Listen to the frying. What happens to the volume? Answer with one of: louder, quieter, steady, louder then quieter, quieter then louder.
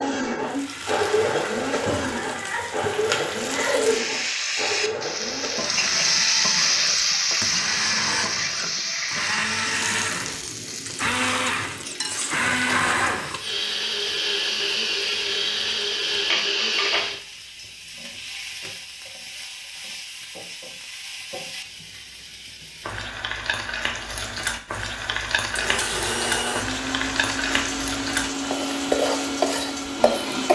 quieter then louder.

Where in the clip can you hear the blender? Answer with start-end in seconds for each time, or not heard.
0.0-17.2, 25.1-30.5.